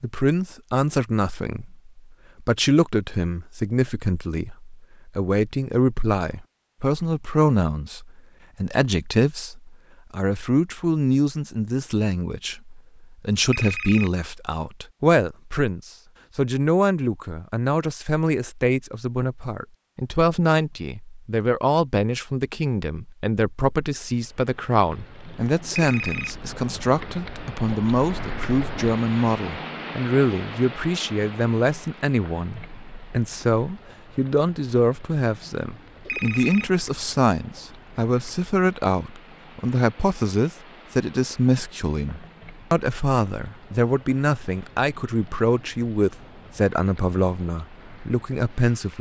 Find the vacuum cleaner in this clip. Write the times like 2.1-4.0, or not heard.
not heard.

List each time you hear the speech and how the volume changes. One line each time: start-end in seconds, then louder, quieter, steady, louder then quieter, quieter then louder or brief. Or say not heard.
0.0-48.9 steady.